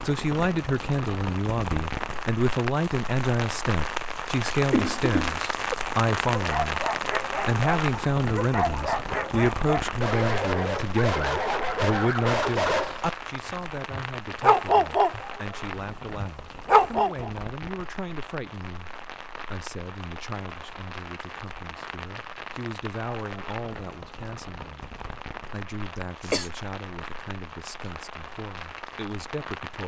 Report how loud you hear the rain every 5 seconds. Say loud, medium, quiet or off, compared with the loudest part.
loud, loud, medium, medium, medium, medium.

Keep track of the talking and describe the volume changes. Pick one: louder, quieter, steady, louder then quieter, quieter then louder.
quieter.